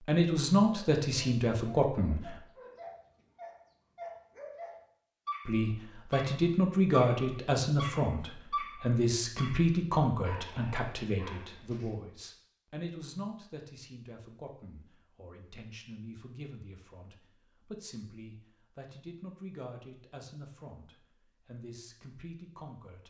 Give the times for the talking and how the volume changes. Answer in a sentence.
The talking can be heard briefly from 0.0 to 2.4 s; and from 5.5 to 23.0 s, getting quieter.